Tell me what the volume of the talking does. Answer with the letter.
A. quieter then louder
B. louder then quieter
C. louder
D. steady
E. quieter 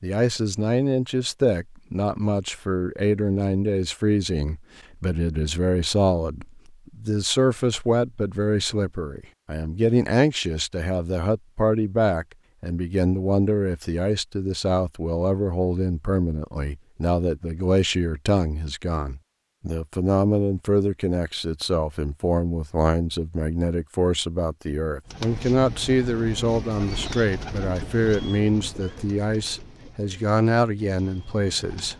D.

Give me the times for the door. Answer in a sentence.
You can't hear the door here.